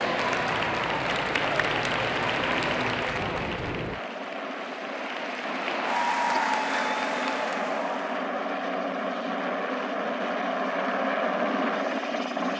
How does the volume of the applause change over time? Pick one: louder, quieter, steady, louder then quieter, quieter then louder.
quieter then louder.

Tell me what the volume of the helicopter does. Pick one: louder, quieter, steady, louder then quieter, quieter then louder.
louder.